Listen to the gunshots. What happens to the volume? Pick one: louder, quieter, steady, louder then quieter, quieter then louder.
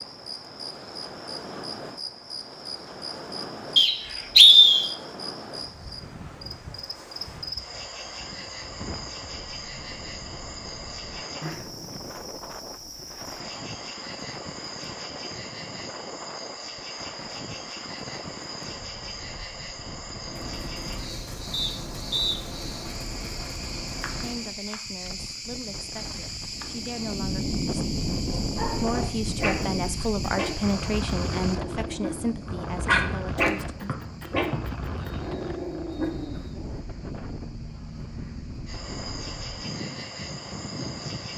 steady.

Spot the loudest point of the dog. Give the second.
33 s.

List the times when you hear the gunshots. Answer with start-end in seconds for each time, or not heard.
20.2-24.6.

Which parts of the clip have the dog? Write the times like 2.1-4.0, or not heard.
28.1-36.8.